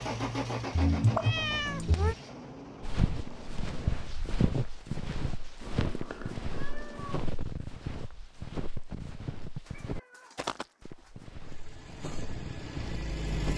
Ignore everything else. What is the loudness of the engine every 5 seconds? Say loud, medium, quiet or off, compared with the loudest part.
loud, off, loud.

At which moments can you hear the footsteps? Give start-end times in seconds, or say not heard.
2.8-13.5.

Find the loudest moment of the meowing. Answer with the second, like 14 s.
1 s.